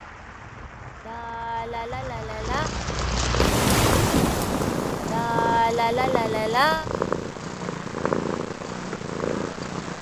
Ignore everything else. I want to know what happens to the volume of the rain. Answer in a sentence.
The loudness of the rain goes up, then down.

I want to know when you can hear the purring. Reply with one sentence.
The purring can be heard from 2.4 to 9.9 s.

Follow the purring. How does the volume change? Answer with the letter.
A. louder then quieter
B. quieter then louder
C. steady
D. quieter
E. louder
C.